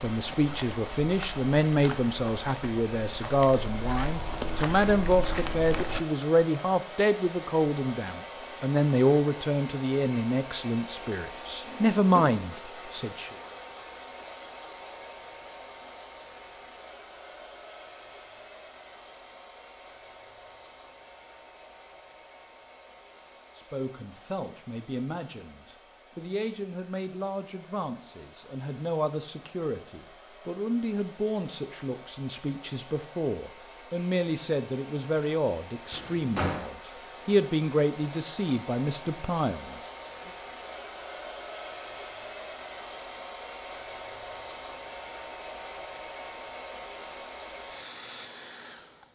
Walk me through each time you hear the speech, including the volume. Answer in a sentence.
The speech can be heard from 0.0 to 13.3 s, at a steady volume; and from 23.6 to 39.8 s, getting louder.